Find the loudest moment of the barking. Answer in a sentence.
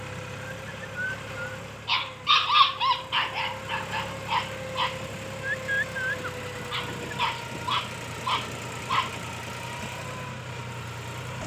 The volume of the barking peaks at 2 seconds.